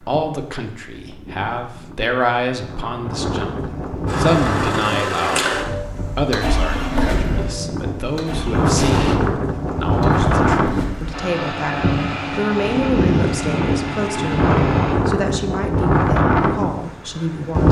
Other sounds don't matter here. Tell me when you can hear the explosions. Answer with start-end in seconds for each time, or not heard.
8.8-9.2.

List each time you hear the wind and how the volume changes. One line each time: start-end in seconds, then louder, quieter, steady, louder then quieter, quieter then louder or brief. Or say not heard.
0.0-17.6 louder.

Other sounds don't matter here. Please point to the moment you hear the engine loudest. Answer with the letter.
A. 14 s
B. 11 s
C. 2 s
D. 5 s
D.